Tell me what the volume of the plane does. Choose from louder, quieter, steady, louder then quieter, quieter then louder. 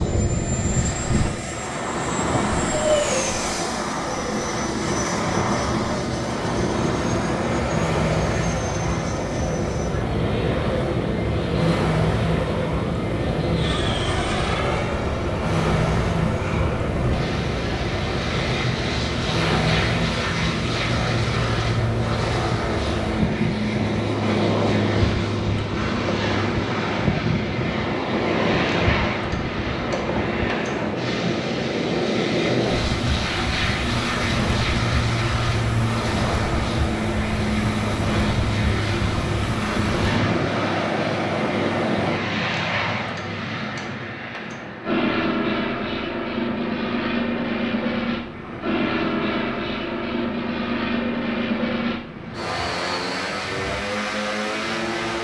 steady.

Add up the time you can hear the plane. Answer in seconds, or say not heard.
55 s.